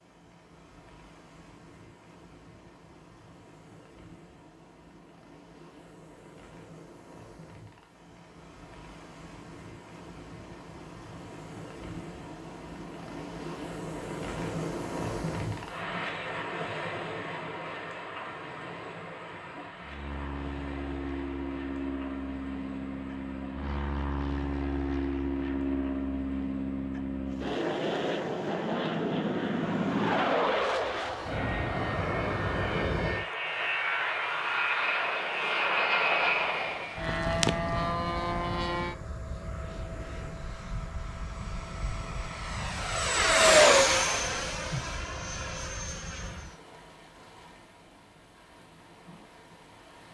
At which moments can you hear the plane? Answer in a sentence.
You can hear the plane from 19.8 to 46.5 s.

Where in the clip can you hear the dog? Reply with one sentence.
The dog can't be heard in this clip.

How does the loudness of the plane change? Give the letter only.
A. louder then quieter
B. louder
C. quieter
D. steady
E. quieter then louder
B.